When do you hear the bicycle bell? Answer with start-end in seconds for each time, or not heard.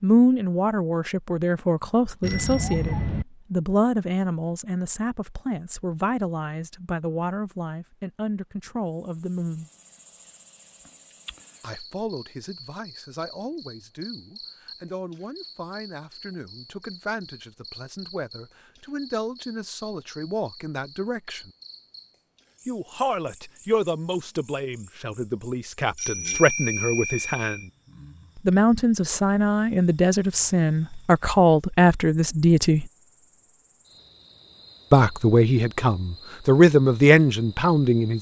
2.2-3.2, 25.9-27.6.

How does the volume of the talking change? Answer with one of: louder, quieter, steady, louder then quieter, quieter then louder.
quieter then louder.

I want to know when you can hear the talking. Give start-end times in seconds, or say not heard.
0.0-9.7, 11.6-21.5, 22.6-27.7, 28.4-32.9, 34.9-38.1.